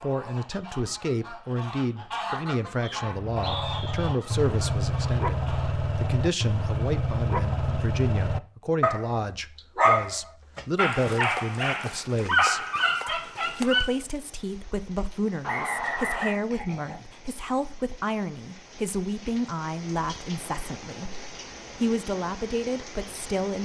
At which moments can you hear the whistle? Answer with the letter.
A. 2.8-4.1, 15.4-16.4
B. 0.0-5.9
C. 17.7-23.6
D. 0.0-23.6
A.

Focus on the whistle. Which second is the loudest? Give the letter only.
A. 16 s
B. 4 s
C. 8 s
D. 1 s
A.